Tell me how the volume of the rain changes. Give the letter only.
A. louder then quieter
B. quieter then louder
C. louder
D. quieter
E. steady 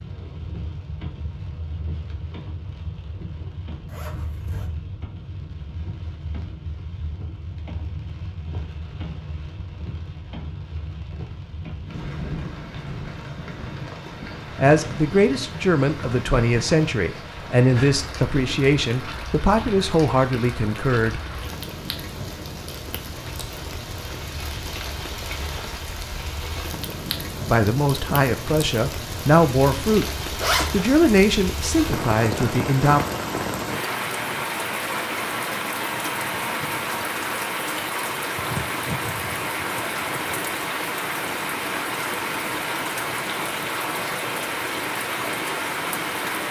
C.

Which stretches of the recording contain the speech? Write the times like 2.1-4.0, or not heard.
14.6-21.2, 27.4-33.0.